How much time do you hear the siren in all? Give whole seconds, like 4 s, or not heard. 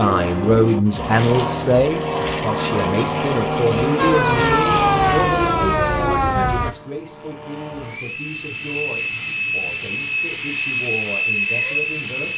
3 s.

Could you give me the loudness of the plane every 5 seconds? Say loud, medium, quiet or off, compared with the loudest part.
loud, medium, loud.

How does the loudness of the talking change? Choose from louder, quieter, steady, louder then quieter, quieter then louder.
quieter.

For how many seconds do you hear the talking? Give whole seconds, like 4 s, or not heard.
12 s.